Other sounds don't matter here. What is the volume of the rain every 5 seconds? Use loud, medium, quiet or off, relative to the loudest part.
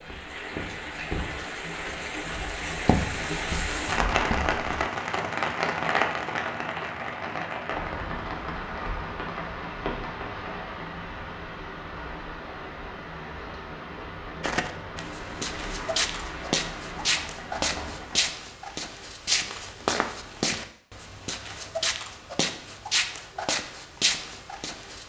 loud, loud, medium, medium, off.